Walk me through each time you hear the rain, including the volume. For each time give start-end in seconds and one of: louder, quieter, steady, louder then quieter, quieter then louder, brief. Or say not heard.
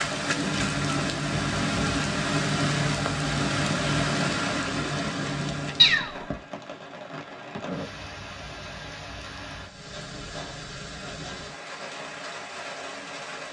0.0-13.4 quieter.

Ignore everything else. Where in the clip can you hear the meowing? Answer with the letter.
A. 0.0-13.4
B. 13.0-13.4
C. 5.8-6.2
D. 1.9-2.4
C.